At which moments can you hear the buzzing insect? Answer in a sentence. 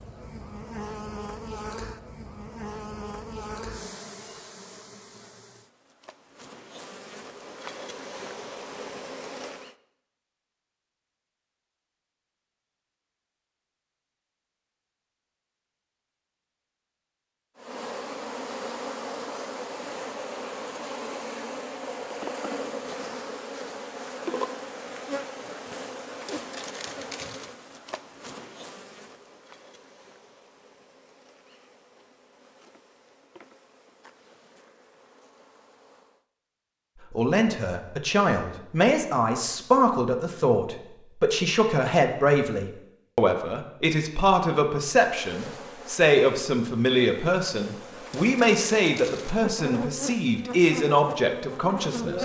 The buzzing insect can be heard from 0.0 to 9.8 s, from 17.6 to 36.2 s and from 45.0 to 52.2 s.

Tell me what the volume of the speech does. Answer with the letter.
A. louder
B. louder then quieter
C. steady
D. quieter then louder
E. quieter
C.